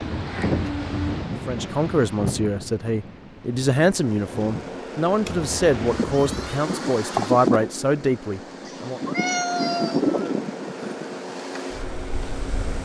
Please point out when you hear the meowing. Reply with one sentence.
You can hear the meowing from 0.0 to 1.2 s, from 5.2 to 6.6 s and from 8.7 to 10.2 s.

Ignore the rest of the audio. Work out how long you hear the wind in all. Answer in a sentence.
The wind can be heard for 13 seconds in total.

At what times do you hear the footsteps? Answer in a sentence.
You can't hear the footsteps here.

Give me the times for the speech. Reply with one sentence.
The speech can be heard from 1.4 to 9.0 s.